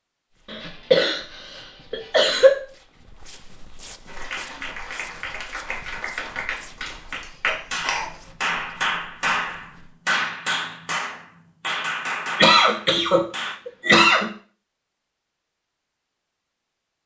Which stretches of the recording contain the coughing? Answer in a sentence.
You can hear the coughing from 0.5 to 1.2 s, from 1.9 to 2.5 s, from 7.5 to 8.1 s and from 12.3 to 14.3 s.